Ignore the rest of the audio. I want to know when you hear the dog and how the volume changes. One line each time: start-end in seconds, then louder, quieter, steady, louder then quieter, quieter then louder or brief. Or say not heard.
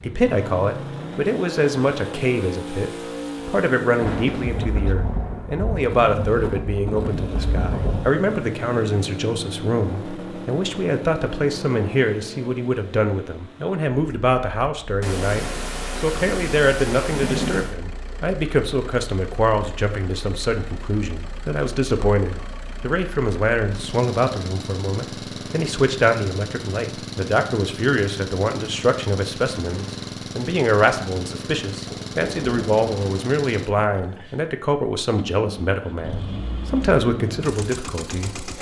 not heard.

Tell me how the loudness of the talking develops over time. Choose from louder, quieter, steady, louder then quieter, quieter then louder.
steady.